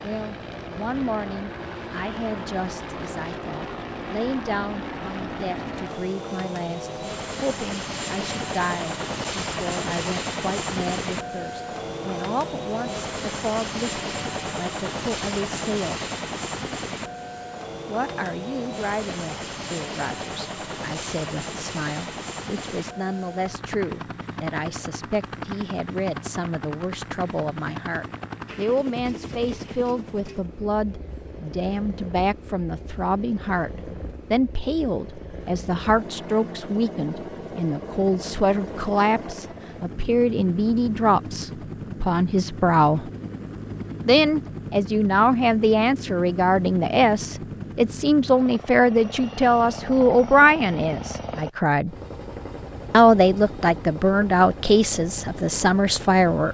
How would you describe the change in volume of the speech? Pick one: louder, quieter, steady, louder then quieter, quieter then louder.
louder.